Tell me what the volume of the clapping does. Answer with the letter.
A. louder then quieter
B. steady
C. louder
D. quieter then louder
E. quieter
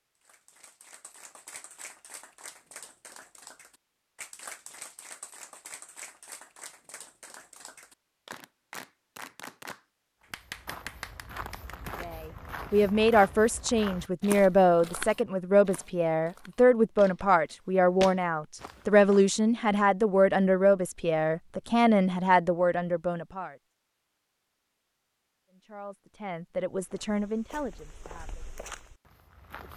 C.